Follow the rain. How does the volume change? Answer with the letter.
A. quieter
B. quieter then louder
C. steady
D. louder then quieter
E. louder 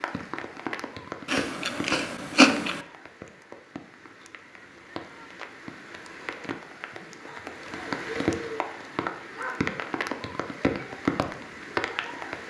B.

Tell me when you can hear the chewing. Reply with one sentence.
The chewing can be heard from 1.2 to 2.9 s.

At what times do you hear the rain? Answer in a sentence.
The rain can be heard from 0.0 to 12.4 s.